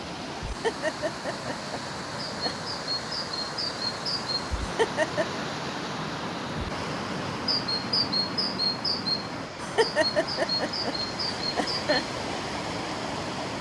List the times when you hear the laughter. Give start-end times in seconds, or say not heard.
0.5-2.6, 4.6-5.5, 9.6-12.1.